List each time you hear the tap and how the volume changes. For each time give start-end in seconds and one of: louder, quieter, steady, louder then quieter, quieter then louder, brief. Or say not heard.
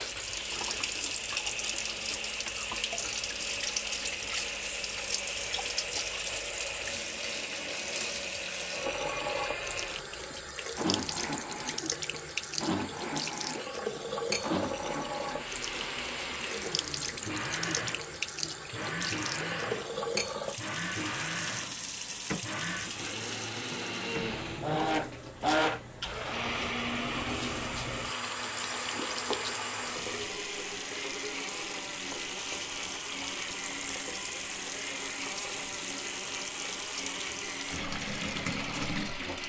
0.0-39.4 steady.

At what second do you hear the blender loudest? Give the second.
25 s.